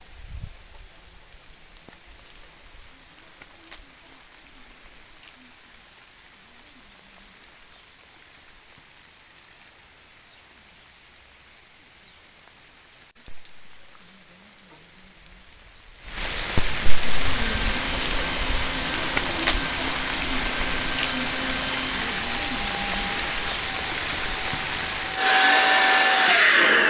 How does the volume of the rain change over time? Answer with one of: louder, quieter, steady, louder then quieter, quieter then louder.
louder.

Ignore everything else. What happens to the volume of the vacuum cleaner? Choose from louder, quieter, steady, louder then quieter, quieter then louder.
louder.